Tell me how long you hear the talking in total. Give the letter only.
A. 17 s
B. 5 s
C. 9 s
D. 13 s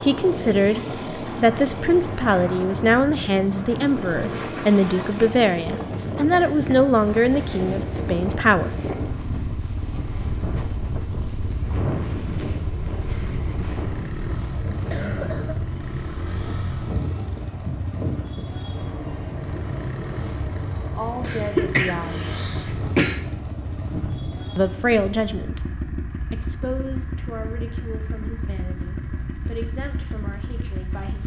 A.